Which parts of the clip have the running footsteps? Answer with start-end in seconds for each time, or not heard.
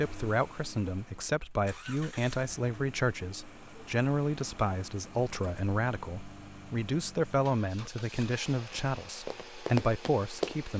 9.2-10.7.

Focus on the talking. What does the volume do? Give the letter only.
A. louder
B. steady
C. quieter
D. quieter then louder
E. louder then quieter
B.